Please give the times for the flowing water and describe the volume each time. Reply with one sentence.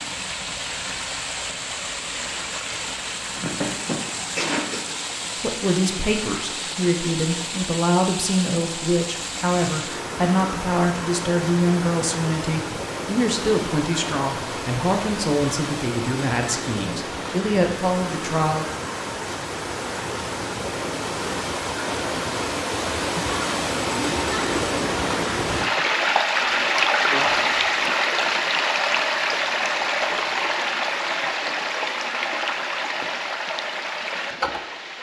You can hear the flowing water from 0.0 to 34.9 s, getting louder.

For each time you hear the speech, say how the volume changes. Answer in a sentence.
You can hear the speech from 5.3 to 18.6 s, at a steady volume.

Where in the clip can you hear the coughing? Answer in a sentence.
You can hear the coughing from 3.3 to 4.8 s.